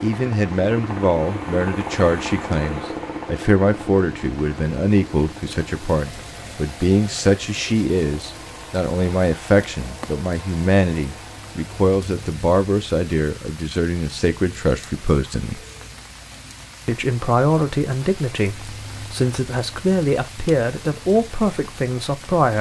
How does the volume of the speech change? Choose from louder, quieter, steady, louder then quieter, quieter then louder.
steady.